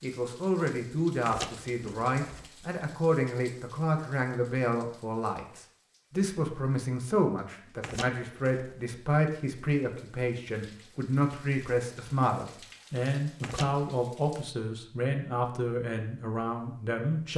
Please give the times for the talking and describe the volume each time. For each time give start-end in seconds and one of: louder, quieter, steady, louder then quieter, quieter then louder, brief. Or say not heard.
0.0-17.3 steady.